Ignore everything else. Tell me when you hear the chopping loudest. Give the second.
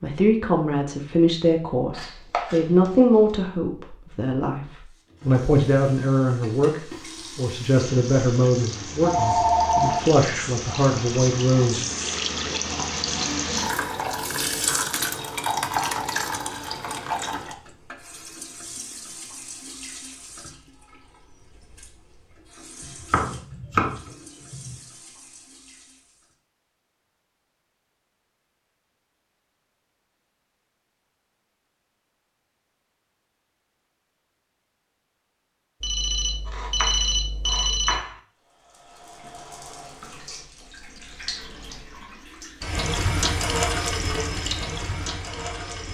24 s.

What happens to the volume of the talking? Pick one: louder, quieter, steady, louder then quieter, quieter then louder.
steady.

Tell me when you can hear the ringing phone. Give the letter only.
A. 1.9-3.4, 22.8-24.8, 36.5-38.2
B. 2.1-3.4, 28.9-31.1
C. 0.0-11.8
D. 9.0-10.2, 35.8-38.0
D.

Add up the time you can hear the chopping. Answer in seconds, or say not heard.
5 s.